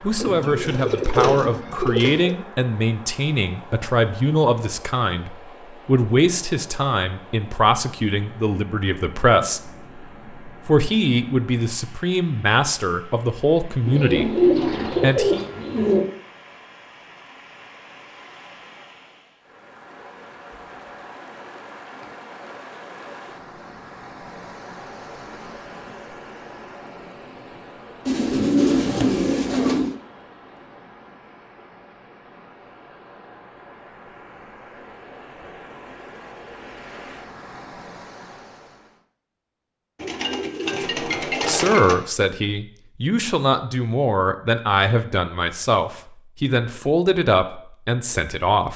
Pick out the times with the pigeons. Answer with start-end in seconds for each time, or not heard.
0.2-2.4, 13.8-16.1, 28.1-29.9, 40.0-42.0.